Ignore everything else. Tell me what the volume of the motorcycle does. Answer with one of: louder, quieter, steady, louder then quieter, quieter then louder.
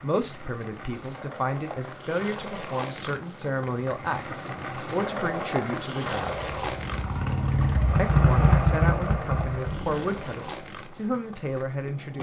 louder then quieter.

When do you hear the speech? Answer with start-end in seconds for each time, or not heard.
0.0-6.5, 8.0-12.1.